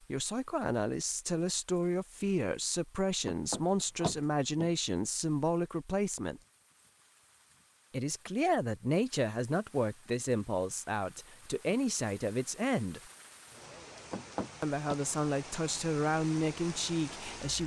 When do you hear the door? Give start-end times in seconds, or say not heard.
3.2-4.7, 14.1-14.9.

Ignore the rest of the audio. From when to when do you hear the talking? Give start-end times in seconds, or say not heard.
0.1-6.4, 7.9-13.0, 14.6-17.6.